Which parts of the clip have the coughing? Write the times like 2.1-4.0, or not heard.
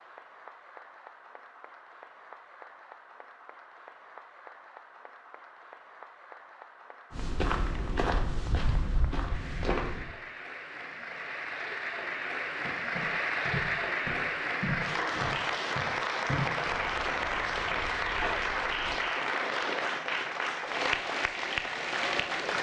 not heard.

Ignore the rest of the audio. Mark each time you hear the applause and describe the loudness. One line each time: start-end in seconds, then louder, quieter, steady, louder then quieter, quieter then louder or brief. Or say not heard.
0.0-22.5 louder.